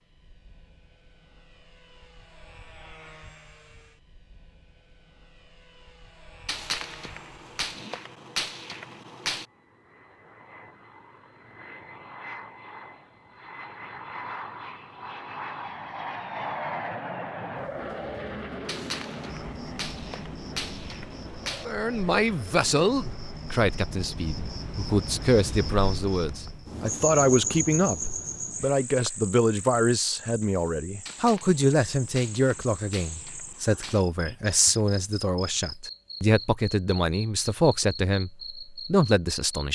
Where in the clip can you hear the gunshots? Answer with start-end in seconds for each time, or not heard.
6.5-9.4, 18.6-21.6, 31.1-34.0.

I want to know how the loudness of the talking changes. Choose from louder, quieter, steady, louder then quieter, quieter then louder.
steady.